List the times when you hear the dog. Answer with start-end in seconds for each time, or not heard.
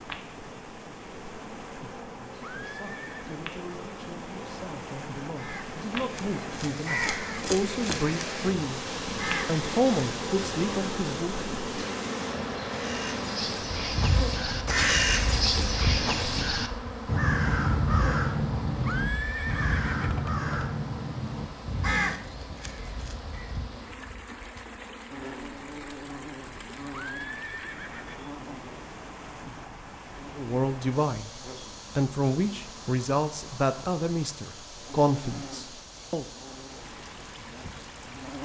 not heard.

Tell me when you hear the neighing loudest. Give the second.
19 s.